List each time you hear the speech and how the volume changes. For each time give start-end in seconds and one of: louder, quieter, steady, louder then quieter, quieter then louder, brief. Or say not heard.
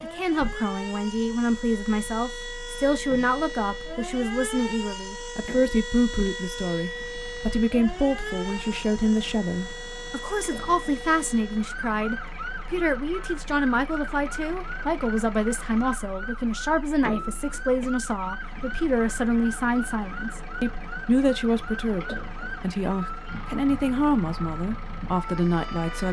0.0-26.0 steady.